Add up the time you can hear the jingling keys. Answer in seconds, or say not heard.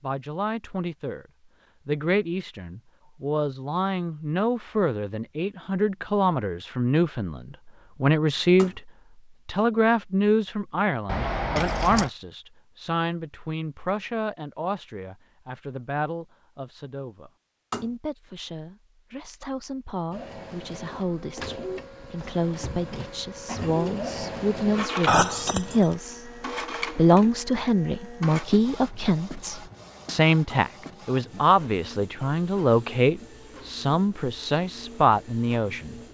2 s.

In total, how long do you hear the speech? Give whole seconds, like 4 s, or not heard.
34 s.